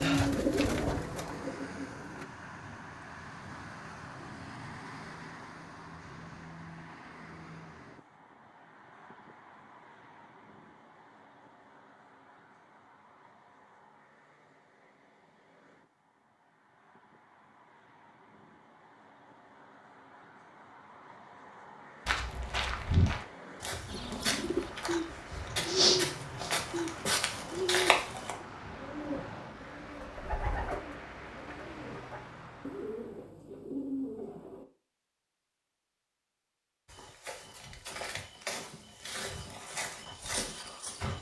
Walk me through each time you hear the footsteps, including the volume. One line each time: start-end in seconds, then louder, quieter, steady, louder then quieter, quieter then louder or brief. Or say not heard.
22.1-28.4 quieter then louder
36.9-41.1 louder.